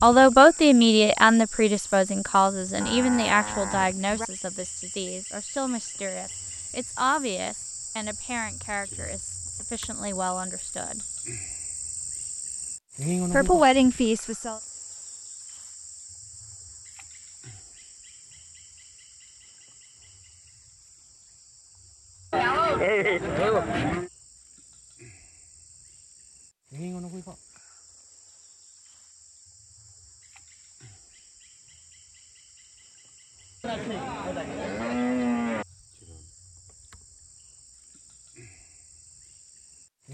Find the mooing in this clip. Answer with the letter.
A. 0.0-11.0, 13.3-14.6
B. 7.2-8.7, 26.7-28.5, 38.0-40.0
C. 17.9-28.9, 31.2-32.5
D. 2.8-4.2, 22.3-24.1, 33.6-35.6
D.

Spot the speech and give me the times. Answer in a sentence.
The speech can be heard from 0.0 to 11.0 s and from 13.3 to 14.6 s.